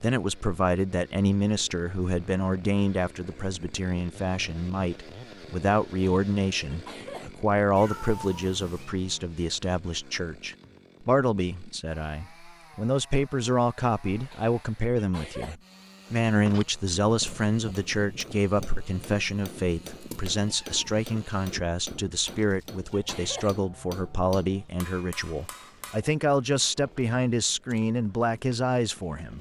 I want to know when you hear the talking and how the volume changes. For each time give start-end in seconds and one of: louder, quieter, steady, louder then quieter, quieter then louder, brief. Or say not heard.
0.0-29.3 steady.